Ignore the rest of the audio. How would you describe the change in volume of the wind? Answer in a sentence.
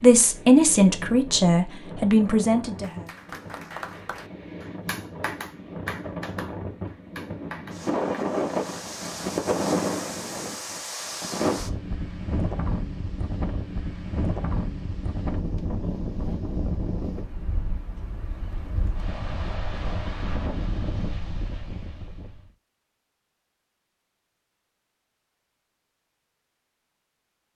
The loudness of the wind goes up, then down.